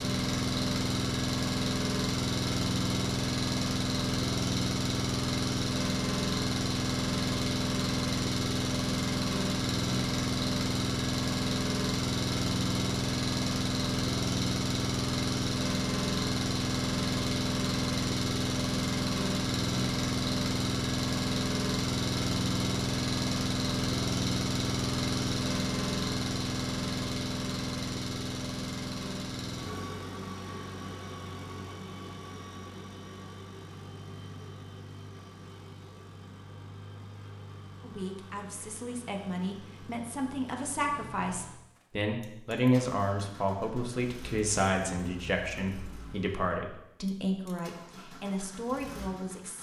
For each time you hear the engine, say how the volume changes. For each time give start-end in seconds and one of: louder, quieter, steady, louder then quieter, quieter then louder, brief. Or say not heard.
0.0-49.5 quieter.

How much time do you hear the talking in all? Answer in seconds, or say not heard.
12 s.